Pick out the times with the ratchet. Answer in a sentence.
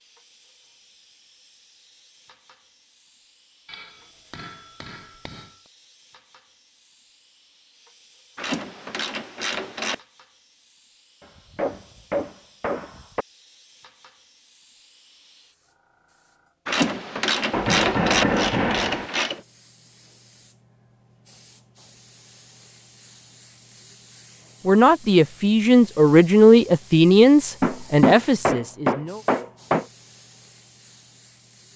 You can hear the ratchet from 8.3 to 10.0 s and from 16.6 to 19.4 s.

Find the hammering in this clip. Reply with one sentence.
You can hear the hammering from 3.6 to 5.5 s, from 11.2 to 13.2 s, from 17.5 to 19.1 s and from 27.6 to 29.9 s.